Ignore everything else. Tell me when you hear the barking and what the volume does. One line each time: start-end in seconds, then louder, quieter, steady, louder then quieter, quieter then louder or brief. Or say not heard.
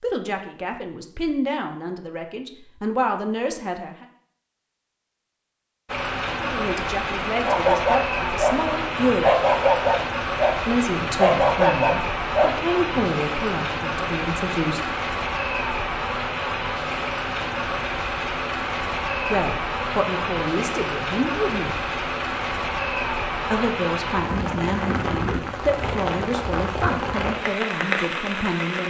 7.5-13.1 steady.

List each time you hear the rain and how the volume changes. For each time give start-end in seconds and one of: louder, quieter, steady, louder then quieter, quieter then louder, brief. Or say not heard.
5.8-28.8 steady.